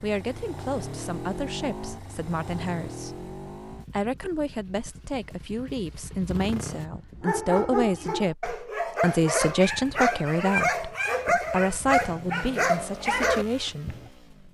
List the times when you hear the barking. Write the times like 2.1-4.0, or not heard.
6.8-14.1.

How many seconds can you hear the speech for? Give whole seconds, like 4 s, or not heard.
14 s.